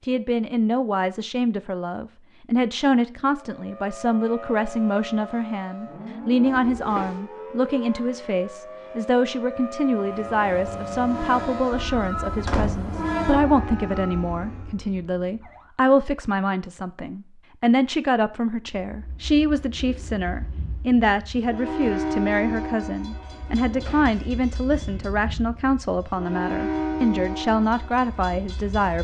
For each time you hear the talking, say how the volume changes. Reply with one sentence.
The talking can be heard from 0.0 to 28.9 s, at a steady volume.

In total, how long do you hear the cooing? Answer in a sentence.
You can't hear the cooing here.